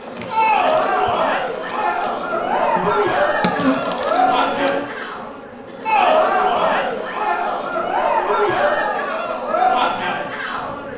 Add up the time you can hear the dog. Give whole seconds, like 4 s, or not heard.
not heard.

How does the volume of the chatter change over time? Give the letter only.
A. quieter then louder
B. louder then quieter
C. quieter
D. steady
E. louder
D.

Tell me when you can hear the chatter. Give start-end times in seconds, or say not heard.
0.1-10.9.